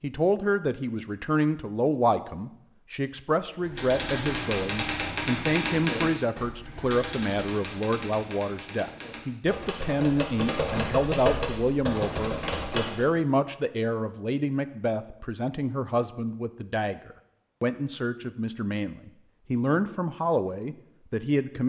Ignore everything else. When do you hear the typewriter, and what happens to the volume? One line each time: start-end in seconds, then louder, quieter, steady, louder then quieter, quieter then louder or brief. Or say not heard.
3.6-13.1 quieter then louder.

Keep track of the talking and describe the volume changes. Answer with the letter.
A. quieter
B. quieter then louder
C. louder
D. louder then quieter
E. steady
E.